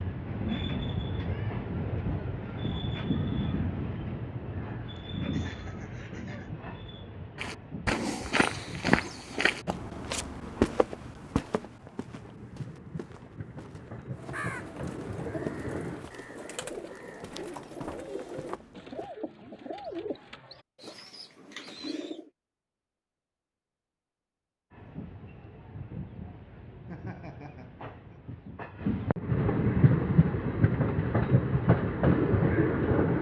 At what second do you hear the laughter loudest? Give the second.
27 s.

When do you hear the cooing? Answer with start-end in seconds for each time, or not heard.
14.1-22.3.